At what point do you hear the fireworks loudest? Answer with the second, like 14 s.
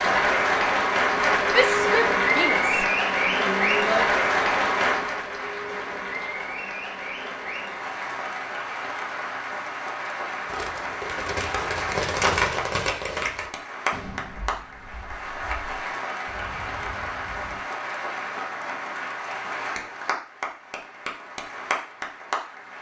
12 s.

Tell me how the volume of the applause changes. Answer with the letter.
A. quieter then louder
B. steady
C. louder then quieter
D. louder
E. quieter
E.